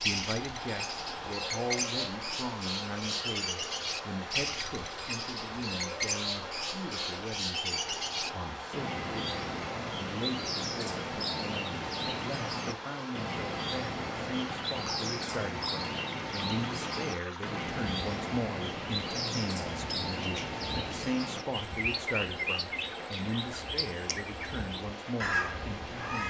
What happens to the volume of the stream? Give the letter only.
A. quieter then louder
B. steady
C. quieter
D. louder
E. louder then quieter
B.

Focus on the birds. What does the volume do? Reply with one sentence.
The volume of the birds stays about the same.